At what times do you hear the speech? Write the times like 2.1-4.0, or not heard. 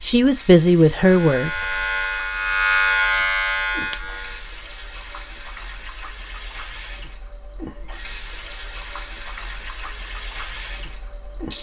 0.0-1.5.